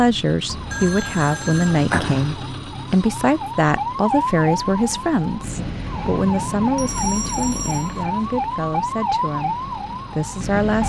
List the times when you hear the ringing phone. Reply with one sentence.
The ringing phone can be heard from 0.7 to 1.9 s and from 6.8 to 8.1 s.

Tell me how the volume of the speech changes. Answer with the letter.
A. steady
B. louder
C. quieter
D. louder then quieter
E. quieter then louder
C.